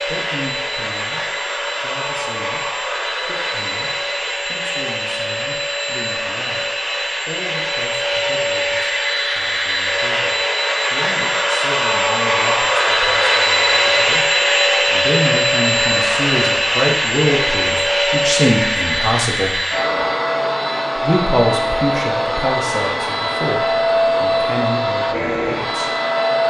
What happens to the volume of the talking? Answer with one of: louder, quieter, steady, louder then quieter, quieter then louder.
louder.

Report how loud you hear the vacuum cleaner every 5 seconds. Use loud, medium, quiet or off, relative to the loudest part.
medium, medium, loud, loud, loud, loud.